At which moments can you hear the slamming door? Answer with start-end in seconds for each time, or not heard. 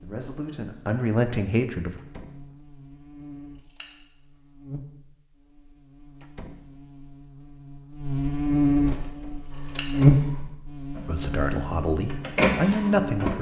1.9-2.5, 6.2-6.8, 9.1-9.6.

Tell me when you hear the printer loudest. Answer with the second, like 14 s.
13 s.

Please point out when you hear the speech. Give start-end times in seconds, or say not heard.
0.0-2.0, 11.1-13.3.